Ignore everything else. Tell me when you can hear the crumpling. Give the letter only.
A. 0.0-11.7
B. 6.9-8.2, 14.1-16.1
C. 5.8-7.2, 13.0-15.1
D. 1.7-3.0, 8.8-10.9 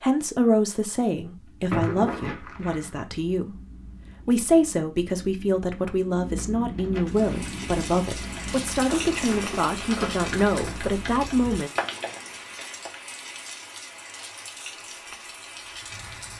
D.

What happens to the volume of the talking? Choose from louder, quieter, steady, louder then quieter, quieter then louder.
steady.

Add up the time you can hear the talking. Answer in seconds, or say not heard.
12 s.